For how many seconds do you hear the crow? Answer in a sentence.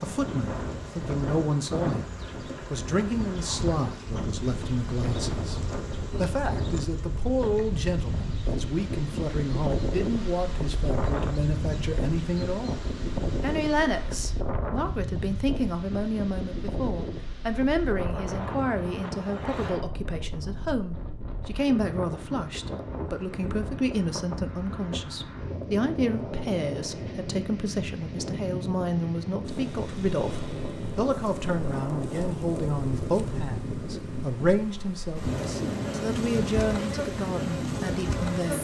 The crow can't be heard in this clip.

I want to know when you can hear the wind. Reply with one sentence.
You can hear the wind from 0.0 to 38.5 s.